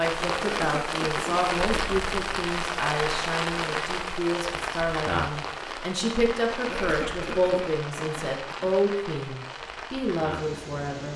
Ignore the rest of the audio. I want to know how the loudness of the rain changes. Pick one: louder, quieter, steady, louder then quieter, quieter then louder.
quieter.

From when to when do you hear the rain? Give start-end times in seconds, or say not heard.
0.0-11.1.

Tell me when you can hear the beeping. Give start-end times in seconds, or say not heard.
not heard.